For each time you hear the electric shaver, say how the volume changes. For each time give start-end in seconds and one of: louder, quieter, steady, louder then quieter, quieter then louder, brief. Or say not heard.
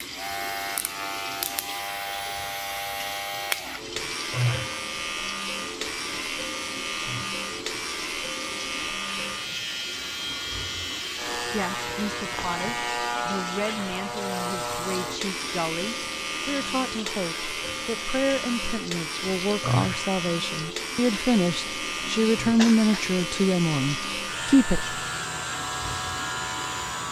0.0-27.0 steady.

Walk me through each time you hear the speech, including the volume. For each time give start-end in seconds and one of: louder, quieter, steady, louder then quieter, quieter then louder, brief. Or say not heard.
11.4-24.9 louder.